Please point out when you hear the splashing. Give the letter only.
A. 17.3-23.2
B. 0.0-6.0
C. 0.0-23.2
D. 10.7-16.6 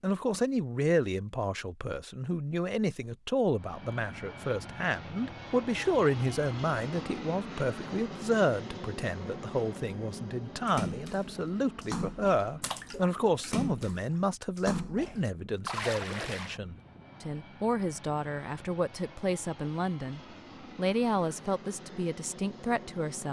D.